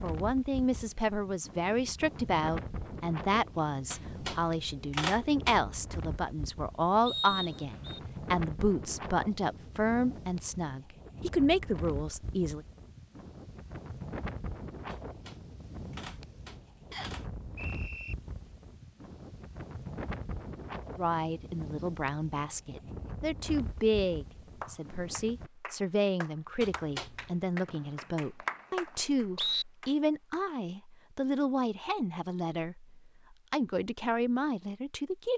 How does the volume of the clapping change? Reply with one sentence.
The loudness of the clapping goes up, then down.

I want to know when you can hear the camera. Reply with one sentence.
You can hear the camera from 3.9 to 5.8 s, from 14.9 to 17.2 s and from 26.6 to 27.5 s.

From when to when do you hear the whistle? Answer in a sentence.
The whistle can be heard from 7.0 to 8.0 s, from 16.9 to 18.1 s and from 27.6 to 29.6 s.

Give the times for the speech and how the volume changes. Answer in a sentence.
The speech can be heard from 0.0 to 12.7 s, at a steady volume; and from 20.9 to 35.3 s, at a steady volume.